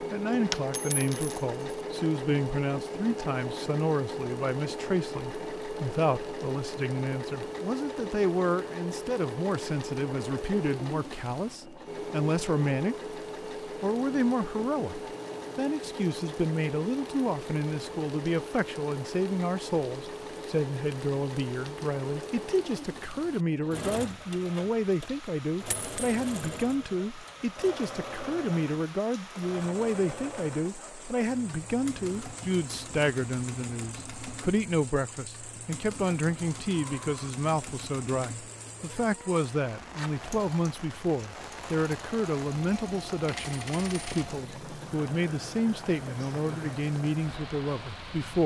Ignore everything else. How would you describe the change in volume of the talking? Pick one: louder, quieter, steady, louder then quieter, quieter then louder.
steady.